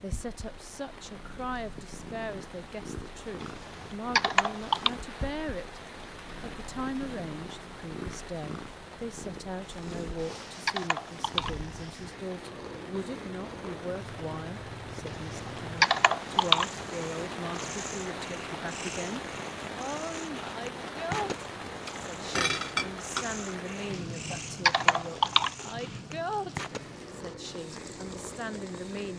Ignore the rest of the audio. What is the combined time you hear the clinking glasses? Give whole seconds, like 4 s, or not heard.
2 s.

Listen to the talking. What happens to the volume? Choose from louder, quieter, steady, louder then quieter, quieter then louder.
steady.